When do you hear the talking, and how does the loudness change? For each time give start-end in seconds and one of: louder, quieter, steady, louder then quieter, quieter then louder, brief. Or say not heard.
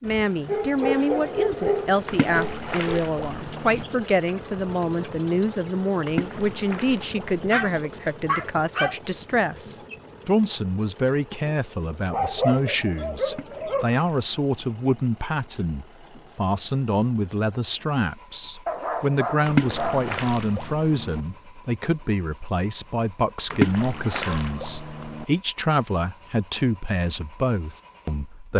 0.0-28.5 steady.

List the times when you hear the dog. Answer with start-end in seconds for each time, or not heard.
0.5-2.8, 7.5-8.9, 12.1-13.9, 18.6-20.1, 24.2-25.2.